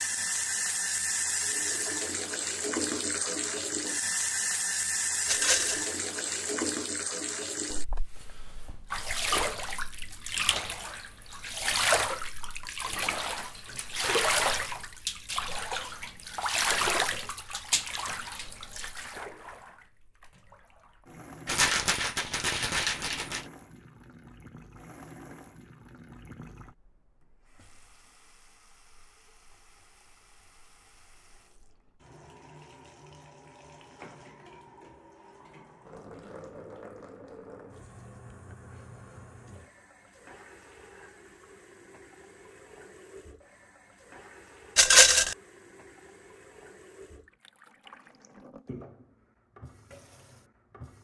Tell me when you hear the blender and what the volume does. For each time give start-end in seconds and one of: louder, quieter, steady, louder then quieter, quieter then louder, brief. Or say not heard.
not heard.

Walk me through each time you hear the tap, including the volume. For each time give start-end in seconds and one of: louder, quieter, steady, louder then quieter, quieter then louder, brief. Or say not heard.
0.0-51.0 quieter.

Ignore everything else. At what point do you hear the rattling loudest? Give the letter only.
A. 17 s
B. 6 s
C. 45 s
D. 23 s
C.